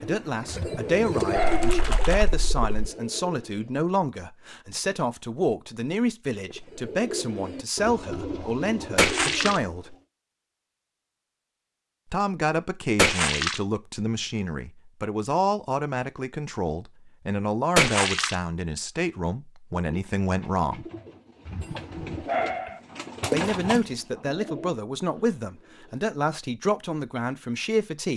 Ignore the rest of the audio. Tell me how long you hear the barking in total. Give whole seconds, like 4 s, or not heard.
3 s.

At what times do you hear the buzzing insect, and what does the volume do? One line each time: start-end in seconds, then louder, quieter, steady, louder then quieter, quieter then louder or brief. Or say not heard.
not heard.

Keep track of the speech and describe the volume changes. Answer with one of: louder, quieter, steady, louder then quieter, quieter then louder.
steady.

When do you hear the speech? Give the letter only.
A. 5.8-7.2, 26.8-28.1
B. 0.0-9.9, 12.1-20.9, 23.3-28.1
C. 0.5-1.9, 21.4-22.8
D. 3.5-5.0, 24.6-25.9
B.